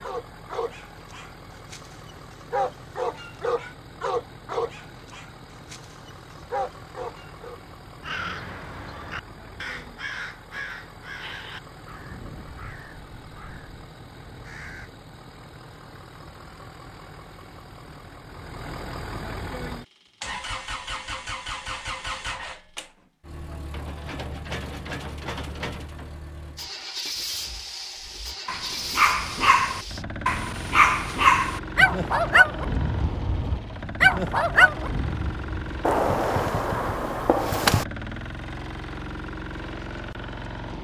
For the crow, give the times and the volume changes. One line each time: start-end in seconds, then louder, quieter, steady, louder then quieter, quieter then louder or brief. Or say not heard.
8.0-14.9 quieter.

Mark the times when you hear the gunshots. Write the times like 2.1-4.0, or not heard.
35.8-37.9.